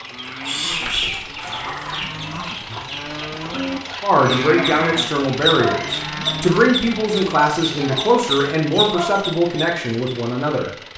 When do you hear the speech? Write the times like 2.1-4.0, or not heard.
4.0-10.7.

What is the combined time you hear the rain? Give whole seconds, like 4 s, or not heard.
not heard.